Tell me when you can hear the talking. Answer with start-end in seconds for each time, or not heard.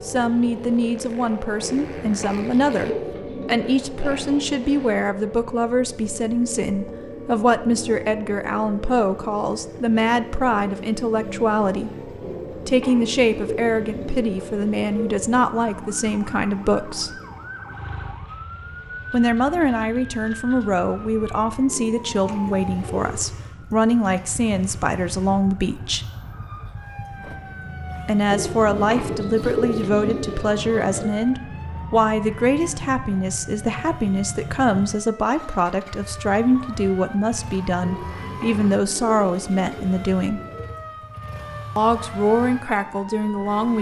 0.0-17.2, 19.1-26.1, 28.1-40.4, 41.8-43.7.